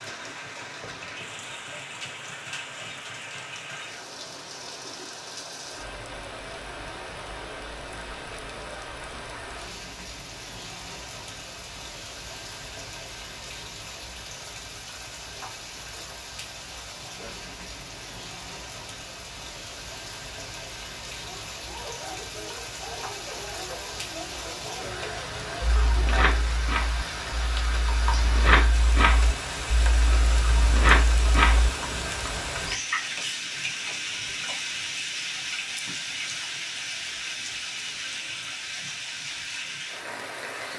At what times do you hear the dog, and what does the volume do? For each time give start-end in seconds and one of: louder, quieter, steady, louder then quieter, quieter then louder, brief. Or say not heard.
21.2-26.5 steady.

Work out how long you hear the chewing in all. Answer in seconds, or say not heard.
6 s.